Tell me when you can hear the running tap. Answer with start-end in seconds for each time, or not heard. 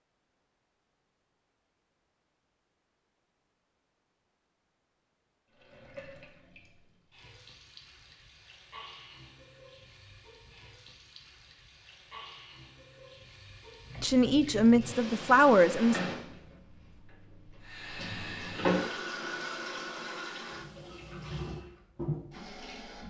5.5-23.0.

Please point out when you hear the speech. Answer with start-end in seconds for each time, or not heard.
14.0-16.0.